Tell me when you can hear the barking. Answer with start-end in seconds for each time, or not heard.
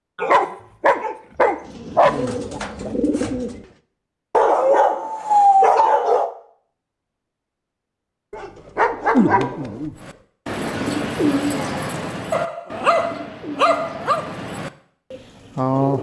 0.1-2.1, 4.3-6.3, 8.3-9.9, 12.3-14.3.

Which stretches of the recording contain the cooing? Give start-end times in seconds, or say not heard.
1.6-3.7, 10.0-15.9.